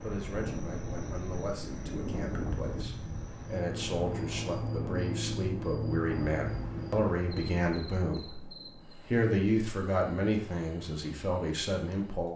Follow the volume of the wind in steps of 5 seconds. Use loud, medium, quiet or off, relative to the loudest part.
loud, loud, off.